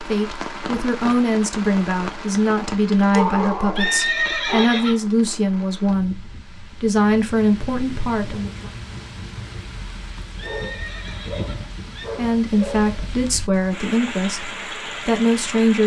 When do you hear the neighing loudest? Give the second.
4 s.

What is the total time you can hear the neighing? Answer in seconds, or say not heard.
3 s.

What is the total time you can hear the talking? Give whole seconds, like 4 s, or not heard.
12 s.